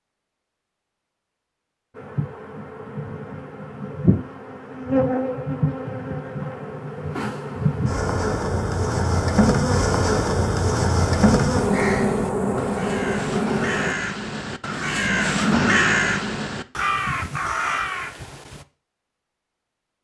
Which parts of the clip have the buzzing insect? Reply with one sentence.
The buzzing insect can be heard from 1.9 to 13.9 s.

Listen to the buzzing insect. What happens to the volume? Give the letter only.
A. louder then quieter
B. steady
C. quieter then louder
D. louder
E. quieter
D.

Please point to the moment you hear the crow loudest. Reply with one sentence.
The loudest moment of the crow is at 16 seconds.